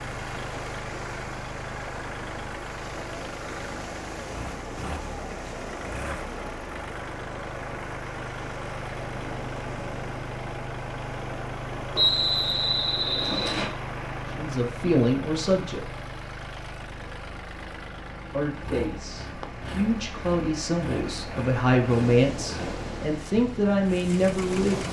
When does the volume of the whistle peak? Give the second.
12 s.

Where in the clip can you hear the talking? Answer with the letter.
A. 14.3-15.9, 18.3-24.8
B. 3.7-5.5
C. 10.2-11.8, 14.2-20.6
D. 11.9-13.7
A.